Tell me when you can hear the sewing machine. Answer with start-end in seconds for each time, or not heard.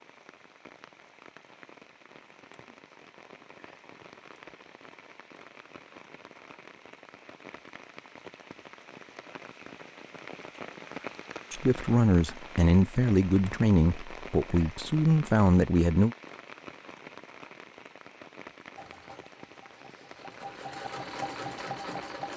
18.7-22.3.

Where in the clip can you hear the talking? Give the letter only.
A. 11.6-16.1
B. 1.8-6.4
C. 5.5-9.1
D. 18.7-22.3
A.